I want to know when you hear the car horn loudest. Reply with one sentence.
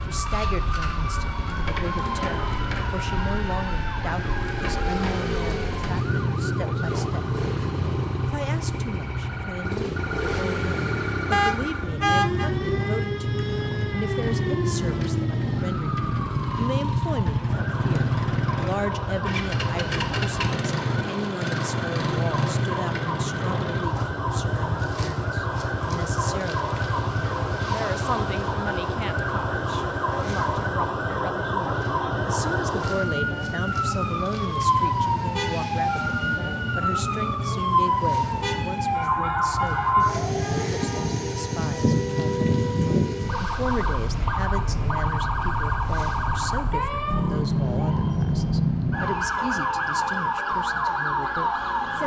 The volume of the car horn peaks at 12 seconds.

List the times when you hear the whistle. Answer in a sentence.
You can't hear the whistle here.